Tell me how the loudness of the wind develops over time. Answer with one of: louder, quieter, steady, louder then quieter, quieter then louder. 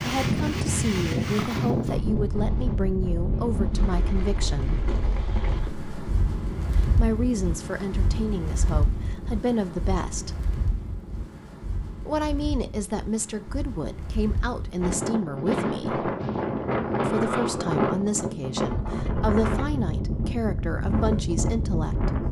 quieter then louder.